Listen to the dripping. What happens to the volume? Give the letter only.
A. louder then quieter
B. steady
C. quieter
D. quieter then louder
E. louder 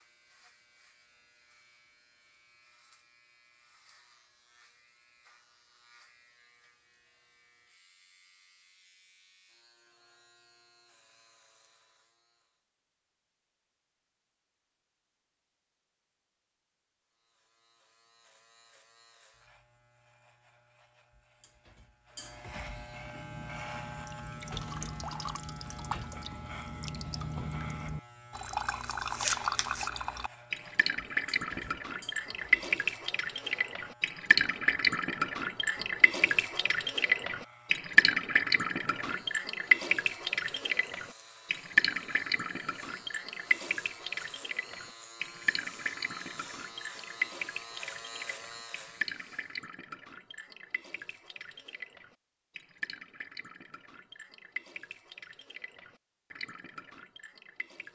A.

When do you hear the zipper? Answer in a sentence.
The zipper can be heard from 28.4 to 29.9 s.